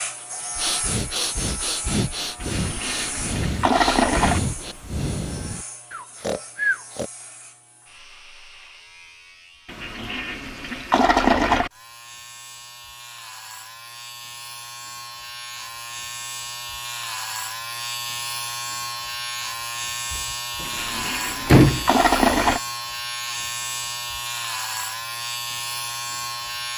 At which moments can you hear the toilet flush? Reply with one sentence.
You can hear the toilet flush from 2.4 to 4.4 s, from 9.7 to 11.7 s and from 20.6 to 22.6 s.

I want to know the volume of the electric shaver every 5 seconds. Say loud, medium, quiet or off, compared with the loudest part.
medium, quiet, medium, loud, loud, loud.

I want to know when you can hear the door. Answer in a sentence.
The door can be heard from 20.1 to 20.6 s and from 21.4 to 21.9 s.